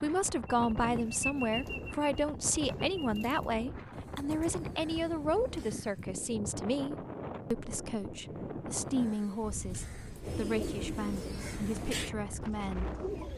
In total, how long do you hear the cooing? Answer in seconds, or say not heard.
10 s.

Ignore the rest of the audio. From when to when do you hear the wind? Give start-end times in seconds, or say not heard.
0.0-13.3.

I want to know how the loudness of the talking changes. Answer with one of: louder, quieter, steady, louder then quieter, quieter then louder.
quieter.